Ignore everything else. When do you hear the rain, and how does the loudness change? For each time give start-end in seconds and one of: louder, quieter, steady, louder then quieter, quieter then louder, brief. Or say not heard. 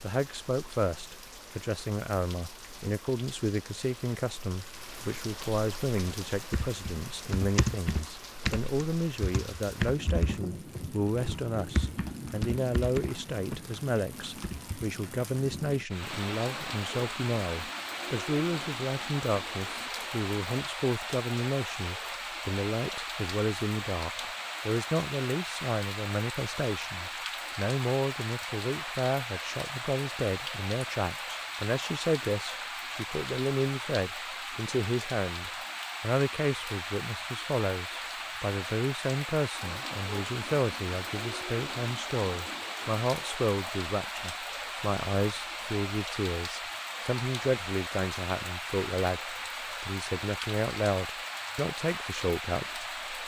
0.0-53.2 louder.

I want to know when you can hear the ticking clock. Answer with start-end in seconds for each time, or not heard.
not heard.